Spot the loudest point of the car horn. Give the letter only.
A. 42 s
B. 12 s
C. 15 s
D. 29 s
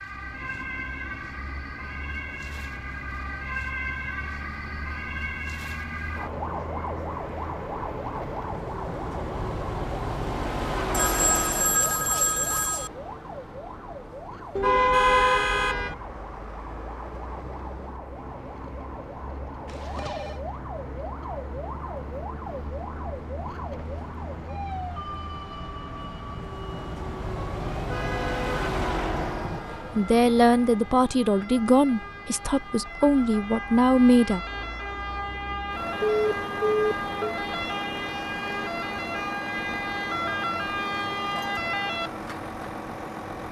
C.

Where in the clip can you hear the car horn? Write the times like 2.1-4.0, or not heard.
14.6-15.9, 27.7-29.6.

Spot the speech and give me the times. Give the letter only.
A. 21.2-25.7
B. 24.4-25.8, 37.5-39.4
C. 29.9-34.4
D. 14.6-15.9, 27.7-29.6
C.